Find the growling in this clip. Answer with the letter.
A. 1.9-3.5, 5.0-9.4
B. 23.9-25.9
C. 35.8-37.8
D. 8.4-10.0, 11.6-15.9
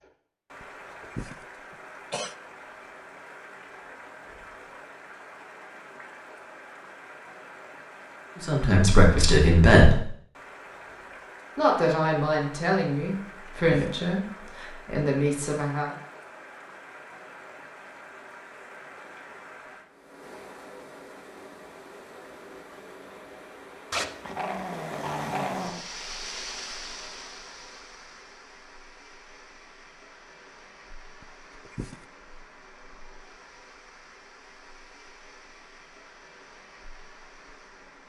B.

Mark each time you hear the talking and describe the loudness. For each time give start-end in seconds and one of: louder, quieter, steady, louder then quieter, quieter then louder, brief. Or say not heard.
8.4-10.0 brief
11.6-15.9 quieter then louder.